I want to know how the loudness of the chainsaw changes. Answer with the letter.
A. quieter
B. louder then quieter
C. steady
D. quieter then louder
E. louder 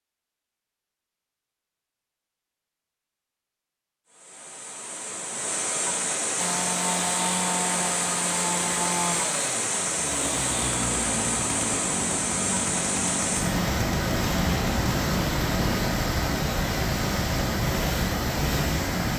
C.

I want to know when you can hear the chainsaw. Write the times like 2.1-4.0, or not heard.
6.3-15.8.